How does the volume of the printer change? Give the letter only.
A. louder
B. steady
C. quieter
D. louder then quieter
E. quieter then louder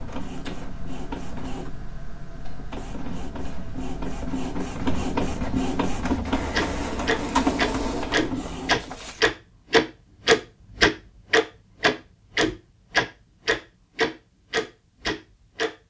A.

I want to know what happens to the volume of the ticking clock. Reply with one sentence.
The loudness of the ticking clock goes up.